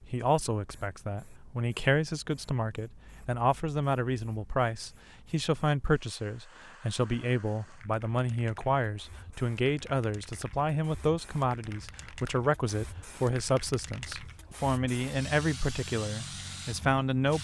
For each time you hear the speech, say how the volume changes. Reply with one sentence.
You can hear the speech from 0.1 to 17.3 s, at a steady volume.